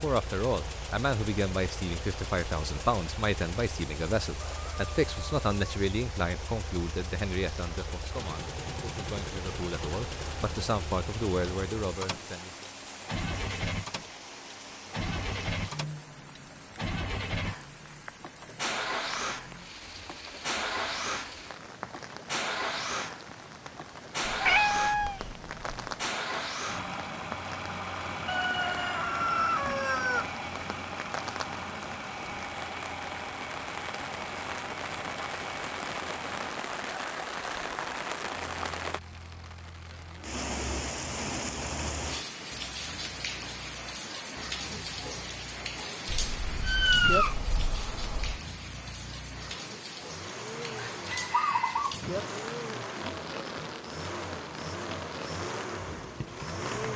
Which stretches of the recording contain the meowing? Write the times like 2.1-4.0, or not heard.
24.2-25.9, 46.0-48.4.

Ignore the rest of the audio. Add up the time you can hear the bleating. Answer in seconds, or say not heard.
not heard.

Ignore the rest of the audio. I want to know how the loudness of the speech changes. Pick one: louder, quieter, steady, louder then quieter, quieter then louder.
quieter then louder.